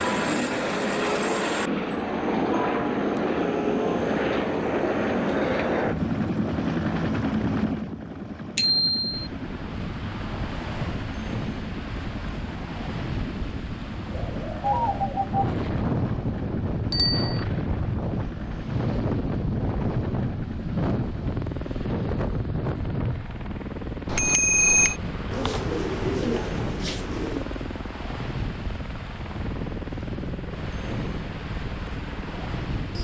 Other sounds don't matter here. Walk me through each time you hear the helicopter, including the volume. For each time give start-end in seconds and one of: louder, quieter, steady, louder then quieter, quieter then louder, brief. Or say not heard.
0.0-33.0 quieter.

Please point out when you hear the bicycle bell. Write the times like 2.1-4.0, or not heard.
8.6-9.2, 16.9-17.4, 24.1-24.9.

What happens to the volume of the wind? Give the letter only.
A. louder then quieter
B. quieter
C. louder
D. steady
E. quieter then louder
A.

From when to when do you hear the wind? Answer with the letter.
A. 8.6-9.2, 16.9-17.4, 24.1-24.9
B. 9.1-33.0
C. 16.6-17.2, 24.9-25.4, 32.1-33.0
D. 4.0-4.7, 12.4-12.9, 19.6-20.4
B.